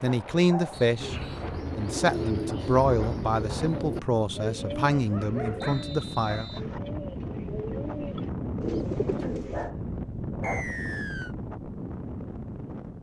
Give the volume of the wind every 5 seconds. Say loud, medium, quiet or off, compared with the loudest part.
medium, loud, loud.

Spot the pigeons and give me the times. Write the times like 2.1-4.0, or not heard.
0.9-9.7.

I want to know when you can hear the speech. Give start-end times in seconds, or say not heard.
0.0-1.1, 1.8-6.7.